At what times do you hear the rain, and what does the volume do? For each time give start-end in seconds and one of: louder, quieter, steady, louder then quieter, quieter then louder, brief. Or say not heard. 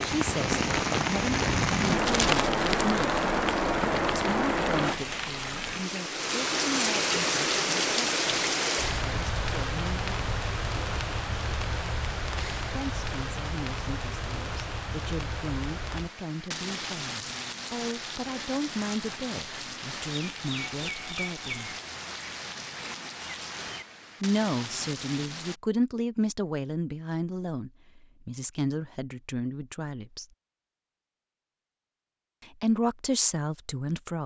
0.0-25.6 quieter.